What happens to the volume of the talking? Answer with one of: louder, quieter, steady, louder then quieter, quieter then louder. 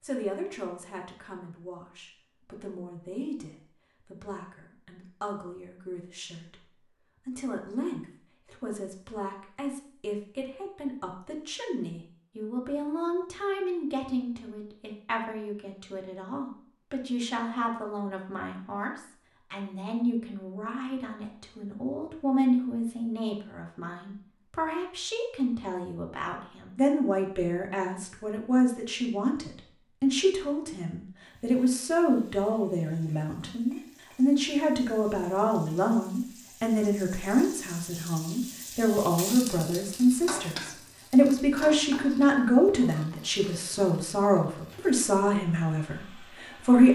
louder.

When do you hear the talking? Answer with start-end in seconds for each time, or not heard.
0.0-46.8.